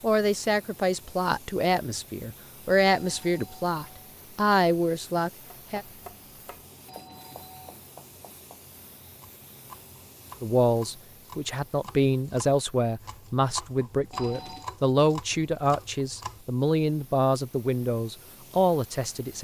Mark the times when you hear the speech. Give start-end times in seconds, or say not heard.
0.0-5.8, 10.4-19.3.